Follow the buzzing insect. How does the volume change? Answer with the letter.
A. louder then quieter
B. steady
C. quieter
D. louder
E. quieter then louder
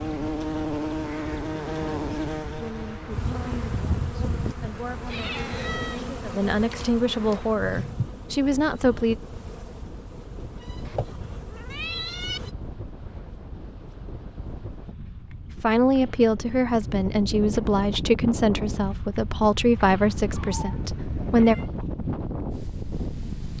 C.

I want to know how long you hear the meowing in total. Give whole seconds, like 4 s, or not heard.
4 s.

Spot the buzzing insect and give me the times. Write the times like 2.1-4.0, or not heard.
0.0-12.6.